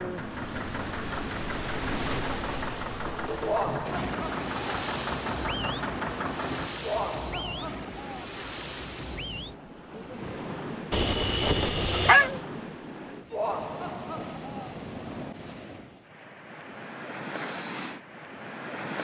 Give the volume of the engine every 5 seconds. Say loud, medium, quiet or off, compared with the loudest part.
loud, loud, off, off.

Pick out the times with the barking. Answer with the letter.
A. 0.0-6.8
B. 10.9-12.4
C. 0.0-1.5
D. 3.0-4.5
B.